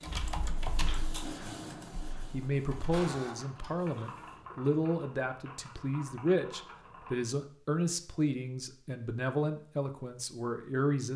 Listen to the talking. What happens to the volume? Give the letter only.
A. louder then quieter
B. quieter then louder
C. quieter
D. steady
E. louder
D.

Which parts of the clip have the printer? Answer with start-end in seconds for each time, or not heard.
0.0-4.4.